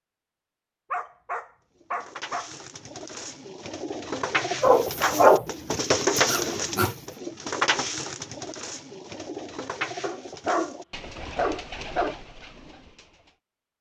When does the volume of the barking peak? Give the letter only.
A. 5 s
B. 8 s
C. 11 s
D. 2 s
A.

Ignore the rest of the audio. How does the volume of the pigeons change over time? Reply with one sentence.
The loudness of the pigeons goes up, then down.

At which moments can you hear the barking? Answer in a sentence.
The barking can be heard from 0.9 to 2.5 s, from 4.6 to 7.0 s and from 10.0 to 12.2 s.